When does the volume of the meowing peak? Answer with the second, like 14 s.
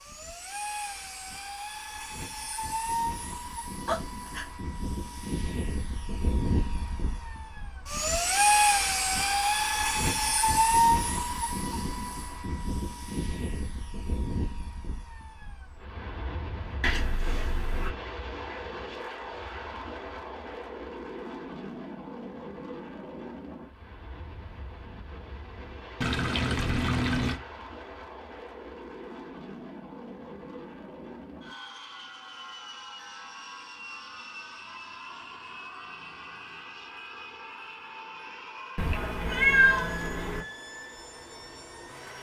40 s.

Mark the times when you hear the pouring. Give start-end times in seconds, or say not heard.
26.0-27.4.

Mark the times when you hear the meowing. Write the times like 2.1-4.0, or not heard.
3.9-4.5, 16.8-17.9, 38.8-40.5.